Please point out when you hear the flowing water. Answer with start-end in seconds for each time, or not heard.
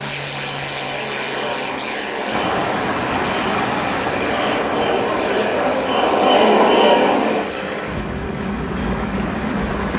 2.3-9.9.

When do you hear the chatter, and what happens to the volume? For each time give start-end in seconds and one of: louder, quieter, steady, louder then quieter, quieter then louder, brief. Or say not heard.
0.0-7.5 louder.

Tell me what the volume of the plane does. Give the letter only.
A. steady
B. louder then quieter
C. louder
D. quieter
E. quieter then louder
A.